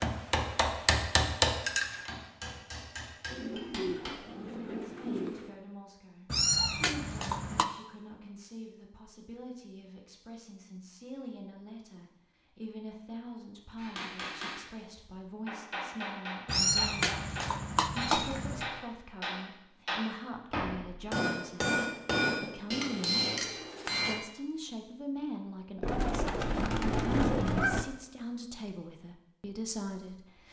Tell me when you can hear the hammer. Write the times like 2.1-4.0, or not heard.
0.0-4.2, 13.8-24.2.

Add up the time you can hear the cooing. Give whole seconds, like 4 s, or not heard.
4 s.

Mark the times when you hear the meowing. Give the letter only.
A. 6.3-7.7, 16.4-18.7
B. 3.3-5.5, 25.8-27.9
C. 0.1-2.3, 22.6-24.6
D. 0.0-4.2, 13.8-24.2
A.